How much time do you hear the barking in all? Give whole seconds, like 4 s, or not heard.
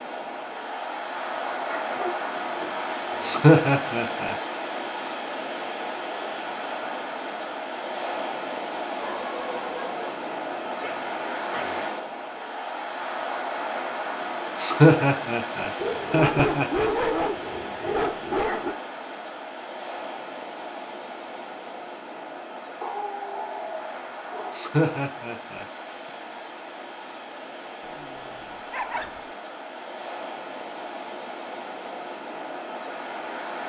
10 s.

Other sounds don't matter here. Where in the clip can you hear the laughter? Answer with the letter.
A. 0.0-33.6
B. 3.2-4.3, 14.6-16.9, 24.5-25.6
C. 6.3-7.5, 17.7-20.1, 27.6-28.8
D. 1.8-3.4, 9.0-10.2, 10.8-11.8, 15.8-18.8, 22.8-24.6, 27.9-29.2
B.